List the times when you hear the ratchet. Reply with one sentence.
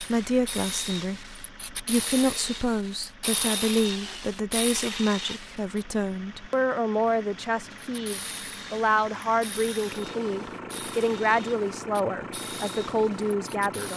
You can hear the ratchet from 0.0 to 5.8 s and from 7.8 to 13.9 s.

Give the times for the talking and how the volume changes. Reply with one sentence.
You can hear the talking from 0.0 to 13.9 s, at a steady volume.